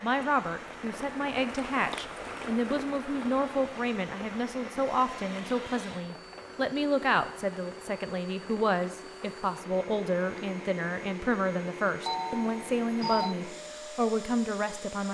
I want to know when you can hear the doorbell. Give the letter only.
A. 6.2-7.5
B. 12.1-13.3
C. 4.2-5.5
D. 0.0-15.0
B.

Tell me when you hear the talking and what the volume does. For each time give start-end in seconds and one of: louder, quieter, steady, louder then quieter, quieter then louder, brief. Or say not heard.
0.0-15.0 steady.